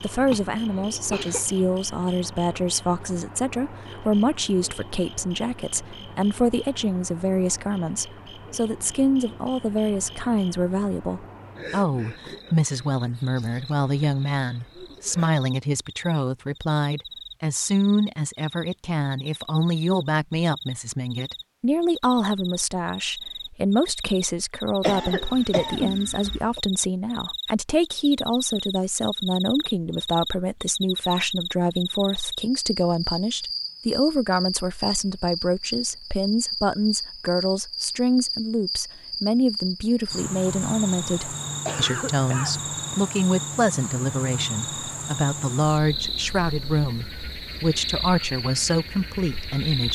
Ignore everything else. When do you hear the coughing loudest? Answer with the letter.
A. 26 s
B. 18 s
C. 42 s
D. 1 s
A.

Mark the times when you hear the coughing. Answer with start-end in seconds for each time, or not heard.
0.3-1.4, 24.8-26.6, 41.5-43.0.